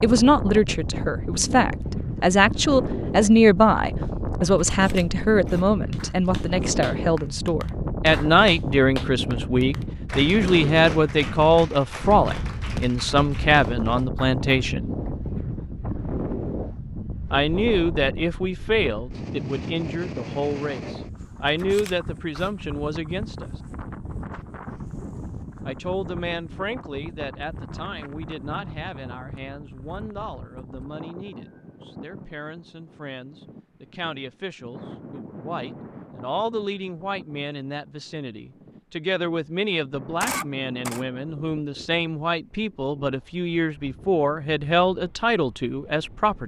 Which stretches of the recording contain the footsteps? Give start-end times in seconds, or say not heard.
not heard.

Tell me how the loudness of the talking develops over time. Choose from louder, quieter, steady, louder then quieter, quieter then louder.
quieter then louder.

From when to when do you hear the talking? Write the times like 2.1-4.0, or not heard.
0.0-14.9, 17.3-23.5, 25.6-46.4.